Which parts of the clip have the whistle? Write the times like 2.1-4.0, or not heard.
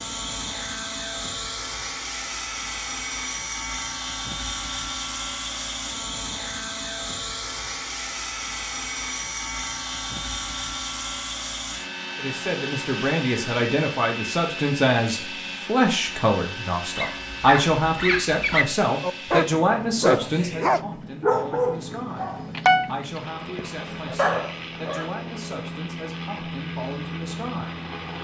not heard.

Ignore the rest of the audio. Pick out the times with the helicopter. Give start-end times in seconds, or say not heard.
0.0-28.2.